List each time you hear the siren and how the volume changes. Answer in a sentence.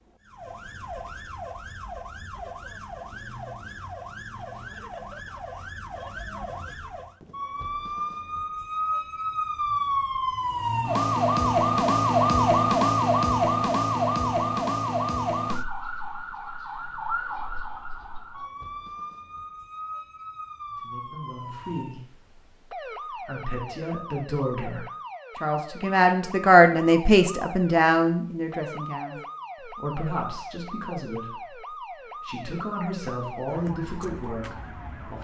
You can hear the siren from 0.0 to 35.1 s, getting louder then quieter.